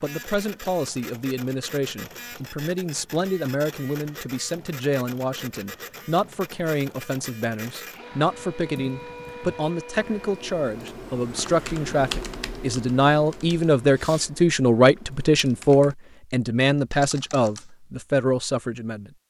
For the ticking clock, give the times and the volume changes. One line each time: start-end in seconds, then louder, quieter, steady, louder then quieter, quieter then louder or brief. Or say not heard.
not heard.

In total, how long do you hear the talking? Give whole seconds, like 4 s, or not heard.
19 s.